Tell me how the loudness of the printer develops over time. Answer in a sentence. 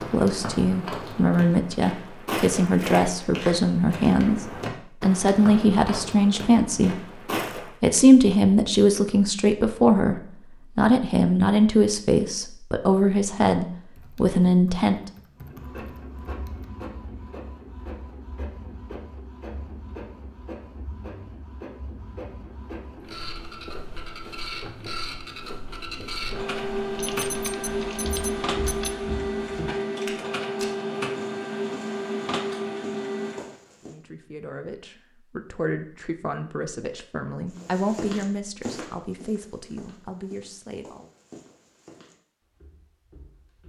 The volume of the printer goes up.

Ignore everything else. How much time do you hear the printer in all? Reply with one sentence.
The printer can be heard for 18 seconds in total.